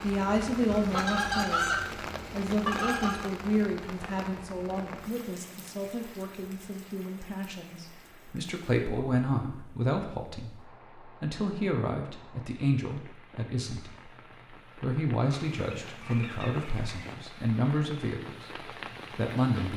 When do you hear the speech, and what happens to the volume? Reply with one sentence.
You can hear the speech from 0.0 to 14.1 s, getting quieter then louder; and from 14.8 to 19.7 s, at a steady volume.